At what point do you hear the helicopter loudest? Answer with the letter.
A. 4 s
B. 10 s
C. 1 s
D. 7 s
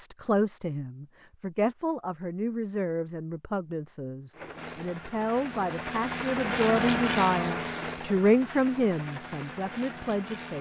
D.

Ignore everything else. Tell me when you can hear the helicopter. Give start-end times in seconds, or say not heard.
4.3-10.5.